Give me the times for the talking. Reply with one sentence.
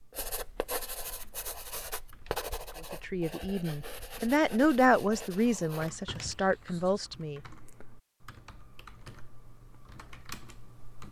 The talking can be heard from 2.9 to 7.4 s.